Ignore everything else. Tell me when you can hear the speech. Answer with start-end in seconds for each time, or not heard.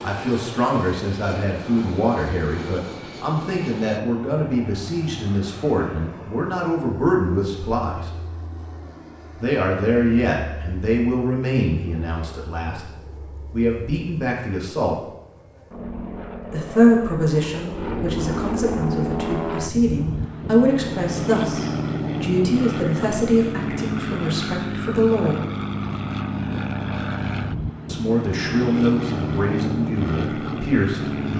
0.0-8.1, 9.4-12.9, 13.5-14.9, 16.4-25.4, 27.9-31.3.